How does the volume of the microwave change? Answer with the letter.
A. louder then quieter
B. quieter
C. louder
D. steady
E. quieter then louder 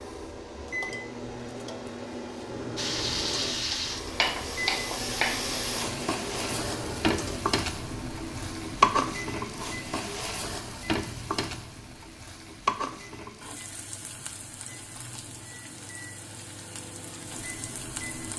B.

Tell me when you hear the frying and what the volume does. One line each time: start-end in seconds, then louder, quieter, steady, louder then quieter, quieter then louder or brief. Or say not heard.
2.8-18.3 quieter.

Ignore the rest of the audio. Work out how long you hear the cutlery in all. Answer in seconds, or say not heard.
not heard.